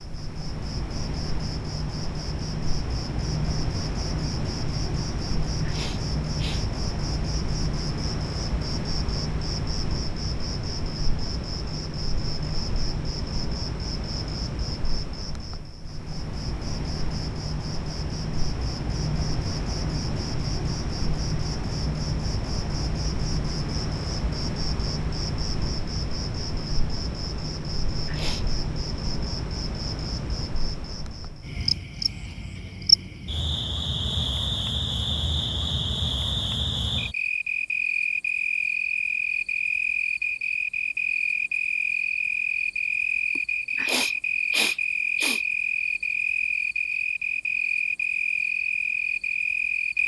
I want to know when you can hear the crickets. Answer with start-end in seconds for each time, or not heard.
0.0-50.0.